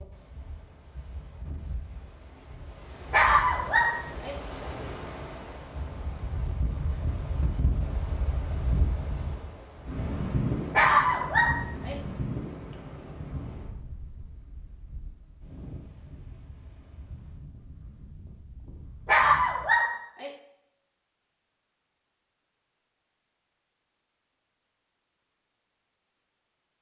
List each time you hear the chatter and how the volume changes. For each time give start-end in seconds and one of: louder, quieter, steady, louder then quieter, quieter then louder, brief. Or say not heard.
not heard.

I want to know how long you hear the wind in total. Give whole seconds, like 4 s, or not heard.
20 s.